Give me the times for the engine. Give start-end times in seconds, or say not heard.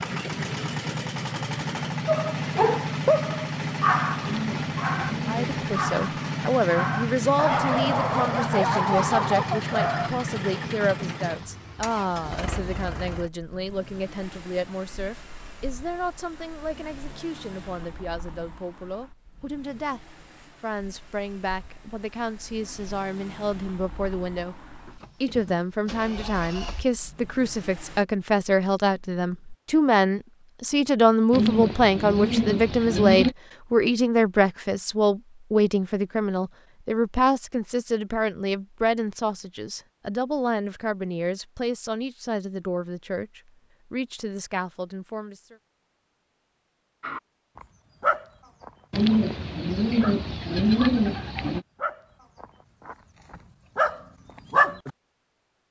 0.0-28.1.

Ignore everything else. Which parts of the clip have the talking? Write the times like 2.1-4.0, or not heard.
5.2-24.6, 25.2-45.5.